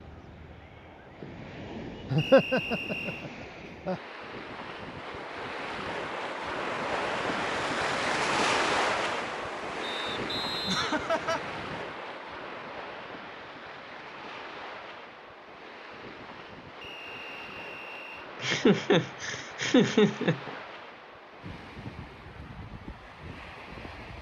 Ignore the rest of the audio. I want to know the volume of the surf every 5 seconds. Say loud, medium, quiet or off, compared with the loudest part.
quiet, loud, medium, quiet, quiet.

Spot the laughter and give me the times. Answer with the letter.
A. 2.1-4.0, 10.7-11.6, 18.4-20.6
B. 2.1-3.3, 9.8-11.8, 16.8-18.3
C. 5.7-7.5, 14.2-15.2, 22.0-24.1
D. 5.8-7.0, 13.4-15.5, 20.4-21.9
A.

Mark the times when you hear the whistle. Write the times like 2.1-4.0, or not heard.
2.1-3.3, 9.8-11.8, 16.8-18.3.